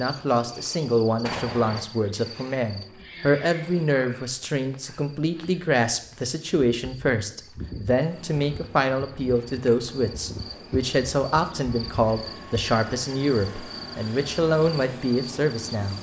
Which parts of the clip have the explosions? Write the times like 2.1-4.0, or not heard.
1.2-1.9.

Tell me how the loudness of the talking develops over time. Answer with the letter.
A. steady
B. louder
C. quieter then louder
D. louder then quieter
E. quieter
A.